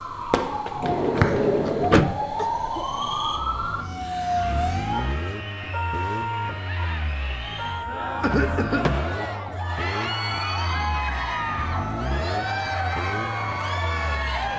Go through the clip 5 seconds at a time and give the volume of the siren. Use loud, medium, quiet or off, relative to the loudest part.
loud, medium, quiet.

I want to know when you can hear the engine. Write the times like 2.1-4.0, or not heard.
3.4-14.5.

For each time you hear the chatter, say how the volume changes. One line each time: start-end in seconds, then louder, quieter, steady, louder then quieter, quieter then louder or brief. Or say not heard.
4.0-14.5 louder.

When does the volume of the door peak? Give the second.
2 s.